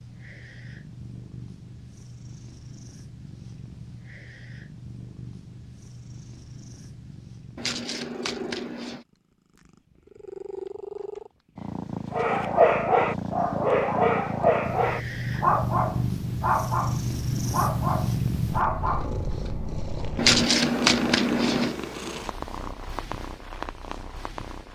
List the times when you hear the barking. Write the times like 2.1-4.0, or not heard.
12.1-19.1.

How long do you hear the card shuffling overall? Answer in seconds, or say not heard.
3 s.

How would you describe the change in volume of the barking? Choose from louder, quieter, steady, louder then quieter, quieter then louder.
quieter.